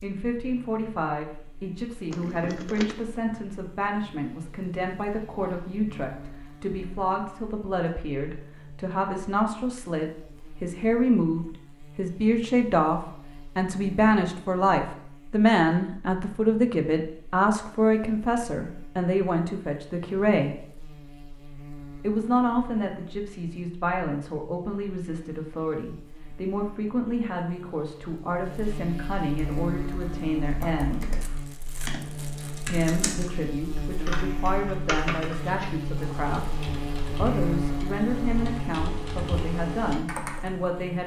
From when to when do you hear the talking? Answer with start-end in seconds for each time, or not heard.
0.0-20.6, 22.0-31.1, 32.7-41.0.